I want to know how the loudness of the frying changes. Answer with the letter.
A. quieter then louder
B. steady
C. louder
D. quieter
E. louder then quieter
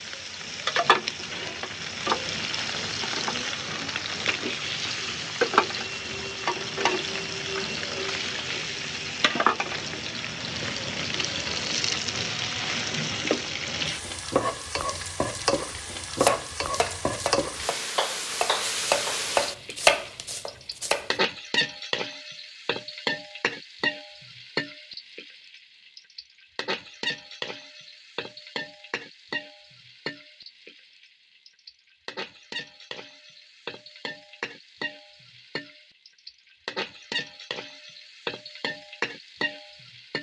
D.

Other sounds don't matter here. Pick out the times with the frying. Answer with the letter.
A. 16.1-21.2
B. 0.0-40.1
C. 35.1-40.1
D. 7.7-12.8
B.